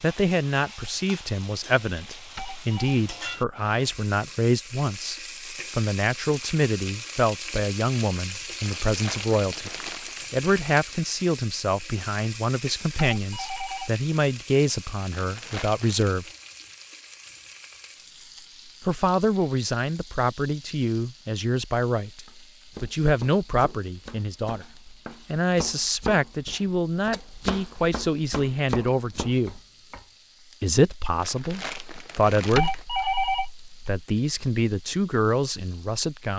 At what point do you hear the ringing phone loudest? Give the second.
33 s.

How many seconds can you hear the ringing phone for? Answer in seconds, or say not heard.
3 s.